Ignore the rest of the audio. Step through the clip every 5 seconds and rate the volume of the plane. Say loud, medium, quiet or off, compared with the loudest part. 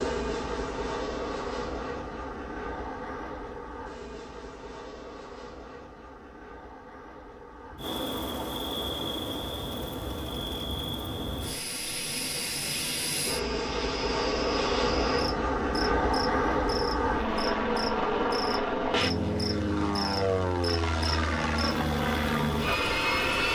medium, quiet, medium, loud, loud.